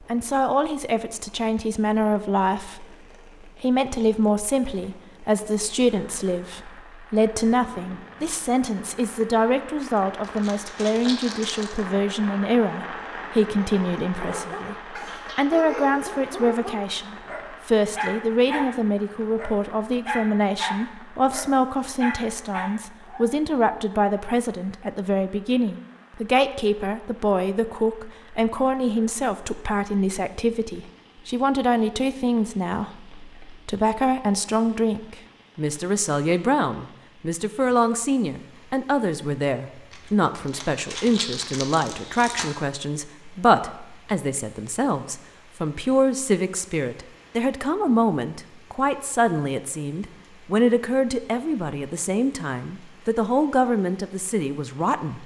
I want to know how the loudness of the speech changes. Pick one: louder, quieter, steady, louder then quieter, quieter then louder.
steady.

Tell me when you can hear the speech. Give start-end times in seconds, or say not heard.
0.0-55.2.